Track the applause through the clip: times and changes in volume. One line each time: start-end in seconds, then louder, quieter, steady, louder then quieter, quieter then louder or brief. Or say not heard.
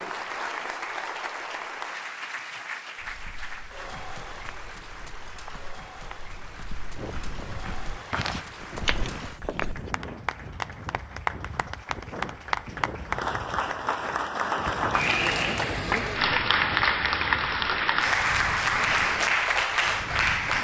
0.0-20.5 quieter then louder.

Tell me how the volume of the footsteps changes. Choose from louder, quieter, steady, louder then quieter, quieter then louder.
louder.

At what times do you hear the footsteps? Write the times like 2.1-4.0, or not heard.
3.0-9.9.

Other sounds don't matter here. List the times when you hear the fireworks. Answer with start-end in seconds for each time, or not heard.
not heard.